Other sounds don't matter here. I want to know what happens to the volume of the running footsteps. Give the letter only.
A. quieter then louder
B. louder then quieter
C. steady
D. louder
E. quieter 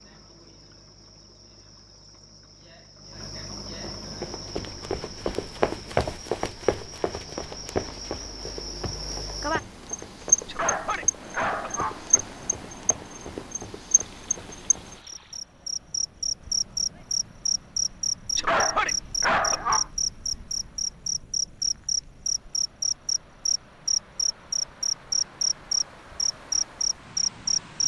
E.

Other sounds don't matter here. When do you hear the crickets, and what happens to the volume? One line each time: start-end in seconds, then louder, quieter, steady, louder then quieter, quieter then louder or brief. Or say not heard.
0.0-27.8 louder.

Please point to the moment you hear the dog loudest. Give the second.
19 s.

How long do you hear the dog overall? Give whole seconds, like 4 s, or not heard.
3 s.